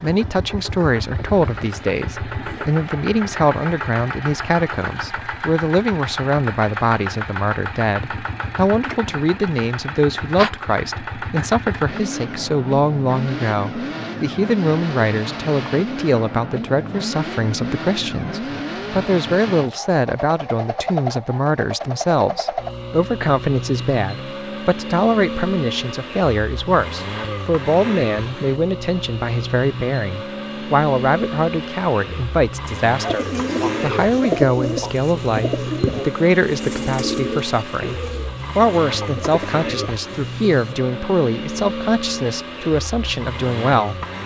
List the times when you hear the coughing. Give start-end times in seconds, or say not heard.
not heard.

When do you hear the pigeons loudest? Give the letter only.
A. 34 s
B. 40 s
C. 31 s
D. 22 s
A.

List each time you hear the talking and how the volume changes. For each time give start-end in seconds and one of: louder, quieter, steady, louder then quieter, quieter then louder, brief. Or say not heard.
0.0-44.0 steady.